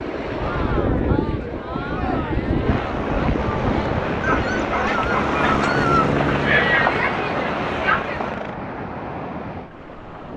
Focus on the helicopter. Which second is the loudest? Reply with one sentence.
The volume of the helicopter peaks at 6 seconds.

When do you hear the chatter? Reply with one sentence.
The chatter can be heard from 0.3 to 8.4 s.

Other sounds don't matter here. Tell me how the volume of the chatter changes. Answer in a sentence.
The volume of the chatter goes up.